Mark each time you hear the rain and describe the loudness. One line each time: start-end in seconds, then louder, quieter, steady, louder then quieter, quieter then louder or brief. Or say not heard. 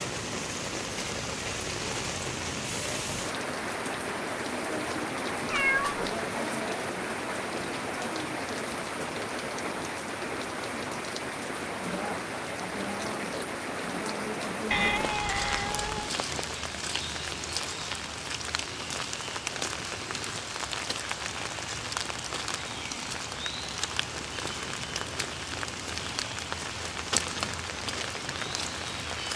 0.0-29.3 steady.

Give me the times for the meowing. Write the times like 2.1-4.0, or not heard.
5.5-6.1, 14.7-16.1.